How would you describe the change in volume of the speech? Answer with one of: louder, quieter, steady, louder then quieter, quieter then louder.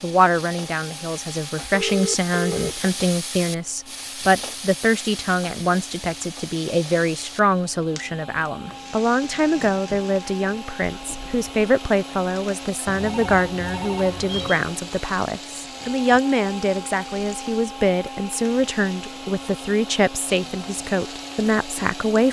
steady.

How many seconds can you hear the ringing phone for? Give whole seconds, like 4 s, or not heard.
3 s.